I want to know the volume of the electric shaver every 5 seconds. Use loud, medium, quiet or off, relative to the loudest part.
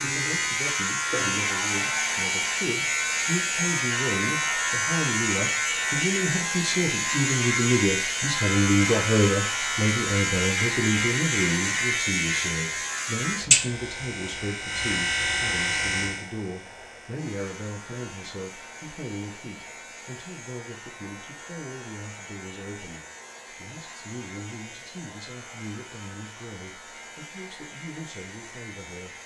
loud, loud, loud, medium, quiet, quiet.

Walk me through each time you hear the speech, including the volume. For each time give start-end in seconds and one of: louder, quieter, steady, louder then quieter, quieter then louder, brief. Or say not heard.
0.0-29.1 louder then quieter.